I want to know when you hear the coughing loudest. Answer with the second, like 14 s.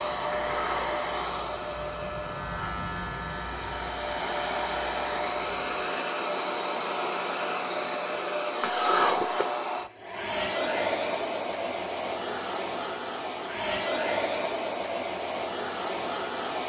9 s.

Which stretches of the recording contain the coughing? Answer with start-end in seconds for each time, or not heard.
0.5-0.9, 8.6-9.4.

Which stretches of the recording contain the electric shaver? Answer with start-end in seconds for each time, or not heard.
0.0-5.8.